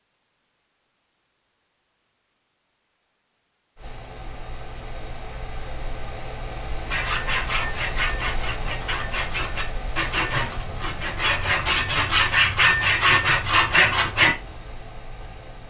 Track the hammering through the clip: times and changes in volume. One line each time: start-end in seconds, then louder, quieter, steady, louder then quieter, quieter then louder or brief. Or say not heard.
not heard.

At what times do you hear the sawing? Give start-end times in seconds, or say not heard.
6.9-14.3.